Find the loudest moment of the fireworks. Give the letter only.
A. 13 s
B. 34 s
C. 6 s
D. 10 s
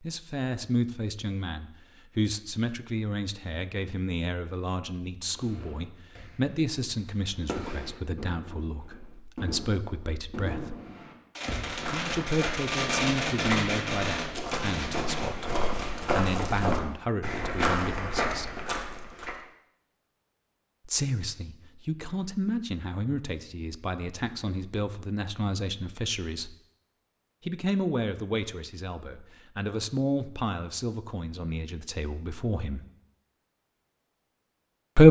A.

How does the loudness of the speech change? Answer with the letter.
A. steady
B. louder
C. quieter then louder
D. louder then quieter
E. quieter
B.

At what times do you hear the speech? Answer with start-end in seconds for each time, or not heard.
0.0-10.8, 11.9-18.6, 20.9-26.6, 27.4-32.9.